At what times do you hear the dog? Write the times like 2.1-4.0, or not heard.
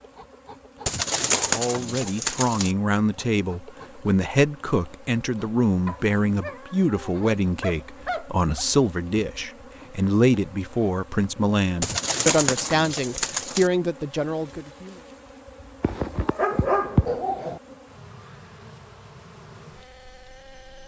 5.8-8.7, 15.8-17.6.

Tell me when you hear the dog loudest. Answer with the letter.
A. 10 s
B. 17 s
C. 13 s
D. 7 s
B.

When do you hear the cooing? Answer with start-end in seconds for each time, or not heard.
0.8-2.8, 11.8-13.7.